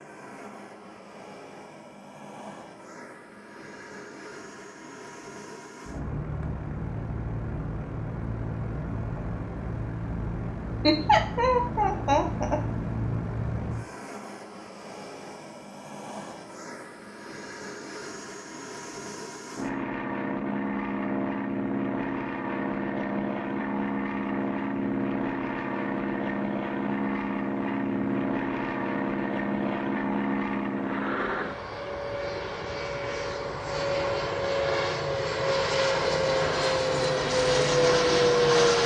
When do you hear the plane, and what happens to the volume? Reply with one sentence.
The plane can be heard from 0.0 to 38.8 s, getting louder.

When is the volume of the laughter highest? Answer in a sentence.
The loudest moment of the laughter is at 11 seconds.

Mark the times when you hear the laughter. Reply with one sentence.
The laughter can be heard from 10.8 to 12.6 s.